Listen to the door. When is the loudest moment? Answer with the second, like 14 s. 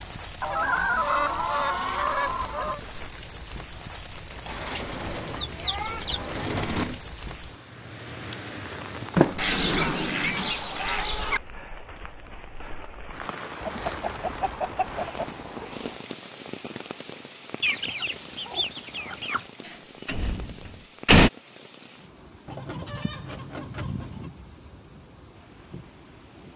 21 s.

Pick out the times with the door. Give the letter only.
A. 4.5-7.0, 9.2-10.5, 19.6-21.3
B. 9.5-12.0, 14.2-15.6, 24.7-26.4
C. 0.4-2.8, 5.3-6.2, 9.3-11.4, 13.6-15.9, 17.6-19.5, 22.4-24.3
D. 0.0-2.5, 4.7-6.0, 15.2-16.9
A.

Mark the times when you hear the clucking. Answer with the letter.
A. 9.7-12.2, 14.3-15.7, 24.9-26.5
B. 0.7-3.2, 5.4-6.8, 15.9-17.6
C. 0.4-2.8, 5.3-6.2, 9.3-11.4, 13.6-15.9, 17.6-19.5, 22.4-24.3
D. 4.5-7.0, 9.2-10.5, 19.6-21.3
C.